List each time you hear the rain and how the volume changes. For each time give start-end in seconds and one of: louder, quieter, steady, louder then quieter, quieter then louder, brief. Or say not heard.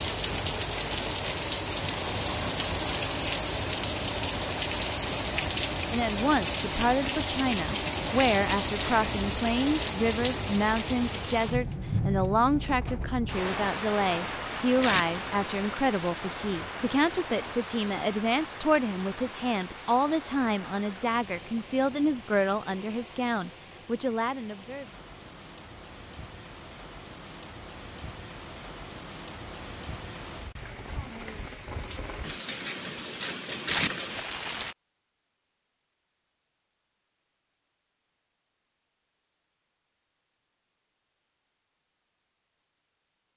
0.0-34.8 quieter then louder.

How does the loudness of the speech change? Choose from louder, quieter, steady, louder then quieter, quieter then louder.
steady.